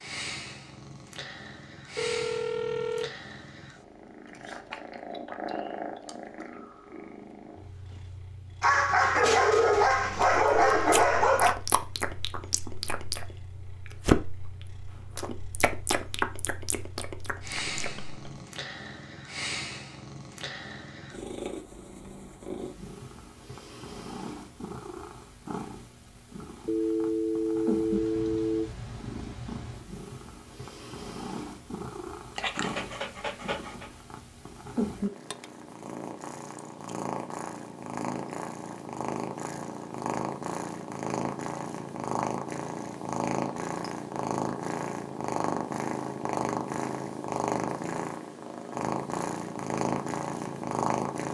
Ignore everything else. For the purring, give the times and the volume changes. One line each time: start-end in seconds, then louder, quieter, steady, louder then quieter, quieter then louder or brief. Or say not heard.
0.0-51.3 louder.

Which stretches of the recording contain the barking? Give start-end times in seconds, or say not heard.
8.6-11.6, 32.4-33.9.